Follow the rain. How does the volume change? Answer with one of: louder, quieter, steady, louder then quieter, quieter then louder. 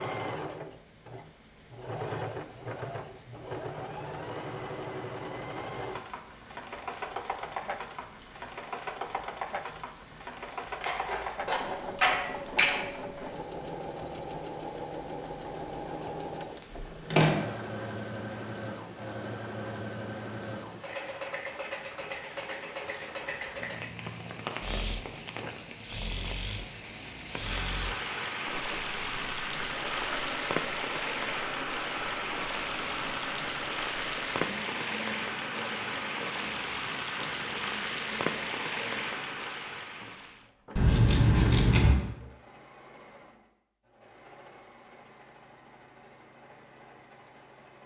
louder.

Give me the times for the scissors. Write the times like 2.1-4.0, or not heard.
10.8-12.8, 16.6-17.4, 40.8-42.0.